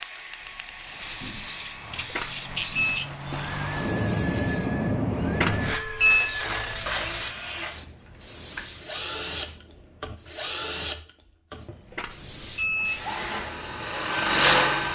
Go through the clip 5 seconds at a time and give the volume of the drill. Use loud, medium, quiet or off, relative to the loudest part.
quiet, medium, loud.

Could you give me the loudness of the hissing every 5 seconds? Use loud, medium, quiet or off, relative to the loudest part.
loud, loud, medium.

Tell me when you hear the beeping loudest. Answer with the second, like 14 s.
6 s.